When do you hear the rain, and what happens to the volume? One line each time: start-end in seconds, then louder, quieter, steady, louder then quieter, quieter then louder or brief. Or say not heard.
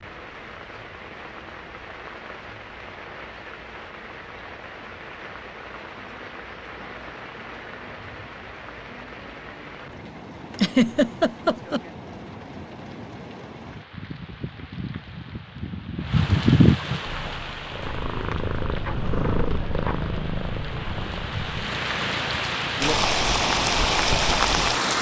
0.0-24.9 louder.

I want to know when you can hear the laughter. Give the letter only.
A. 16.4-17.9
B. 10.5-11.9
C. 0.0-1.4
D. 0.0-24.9
B.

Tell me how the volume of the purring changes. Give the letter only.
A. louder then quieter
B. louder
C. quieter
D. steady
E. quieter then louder
C.